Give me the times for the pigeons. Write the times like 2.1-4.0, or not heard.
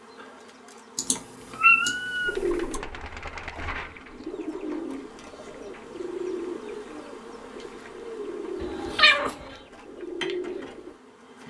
2.2-10.9.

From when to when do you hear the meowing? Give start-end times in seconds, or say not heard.
0.9-2.8, 8.6-9.3.